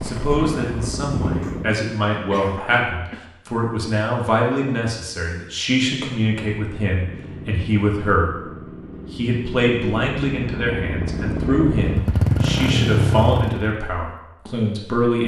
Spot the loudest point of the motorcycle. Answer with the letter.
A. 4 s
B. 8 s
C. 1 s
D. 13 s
D.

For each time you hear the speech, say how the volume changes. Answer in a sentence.
You can hear the speech from 0.0 to 15.2 s, at a steady volume.